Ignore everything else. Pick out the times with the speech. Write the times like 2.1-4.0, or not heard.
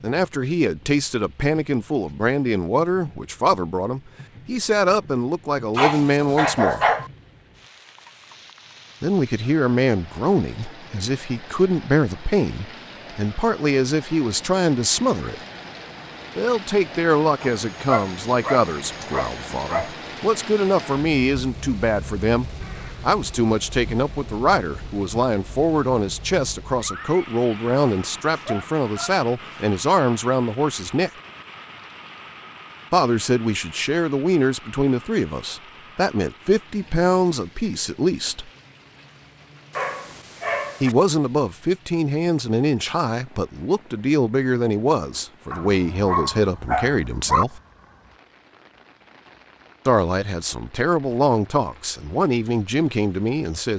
0.0-6.8, 9.0-15.3, 16.4-31.1, 32.9-38.5, 40.8-47.6, 49.9-53.7.